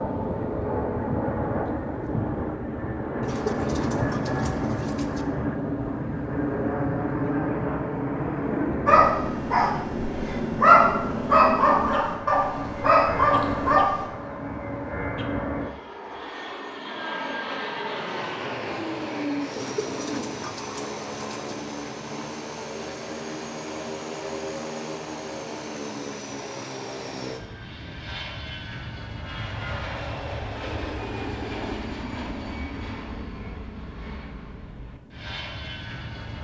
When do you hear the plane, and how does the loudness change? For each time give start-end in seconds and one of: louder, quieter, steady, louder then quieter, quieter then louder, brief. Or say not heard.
0.0-36.3 quieter.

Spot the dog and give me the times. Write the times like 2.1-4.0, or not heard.
8.8-13.9.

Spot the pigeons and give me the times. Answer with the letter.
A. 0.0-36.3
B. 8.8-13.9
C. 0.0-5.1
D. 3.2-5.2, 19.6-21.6
D.